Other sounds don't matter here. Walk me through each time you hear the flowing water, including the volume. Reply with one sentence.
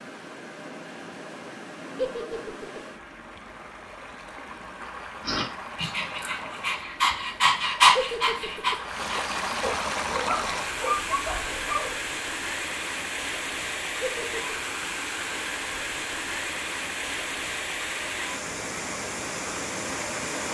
You can hear the flowing water from 0.0 to 20.4 s, getting louder.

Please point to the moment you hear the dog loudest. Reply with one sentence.
The loudest moment of the dog is at 8 seconds.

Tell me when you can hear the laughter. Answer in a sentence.
You can hear the laughter from 1.9 to 2.8 s, from 8.0 to 8.8 s and from 14.0 to 14.6 s.